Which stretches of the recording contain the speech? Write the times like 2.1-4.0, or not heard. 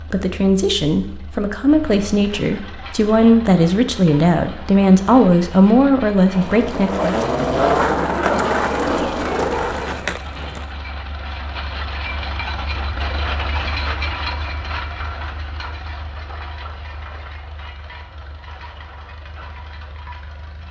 0.1-7.2.